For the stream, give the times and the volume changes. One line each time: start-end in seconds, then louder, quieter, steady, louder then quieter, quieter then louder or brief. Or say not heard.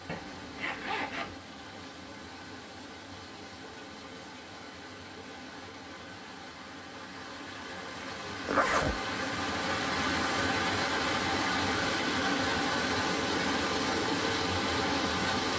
0.0-15.5 louder.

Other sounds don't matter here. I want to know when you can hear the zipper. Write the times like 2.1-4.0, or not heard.
0.1-1.4, 8.4-8.9.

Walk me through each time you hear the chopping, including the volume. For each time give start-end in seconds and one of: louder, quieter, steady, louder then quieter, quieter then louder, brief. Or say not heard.
not heard.